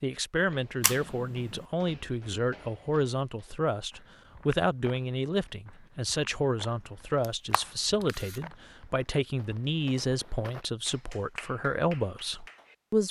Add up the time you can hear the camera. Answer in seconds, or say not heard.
2 s.